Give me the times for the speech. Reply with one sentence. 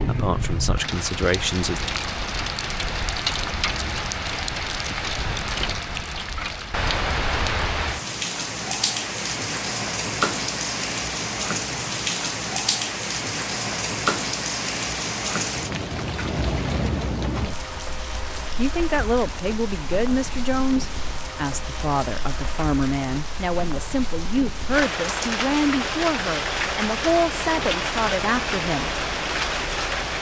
You can hear the speech from 0.0 to 1.8 s and from 18.6 to 28.9 s.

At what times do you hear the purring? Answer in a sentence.
The purring can't be heard in this clip.